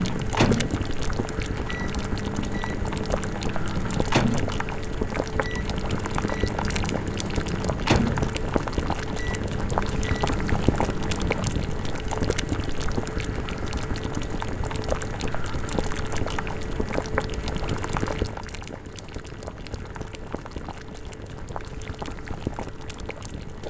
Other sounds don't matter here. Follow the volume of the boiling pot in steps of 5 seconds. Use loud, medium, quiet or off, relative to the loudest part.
loud, loud, loud, loud, medium.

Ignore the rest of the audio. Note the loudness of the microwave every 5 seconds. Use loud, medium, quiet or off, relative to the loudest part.
loud, loud, medium, off, off.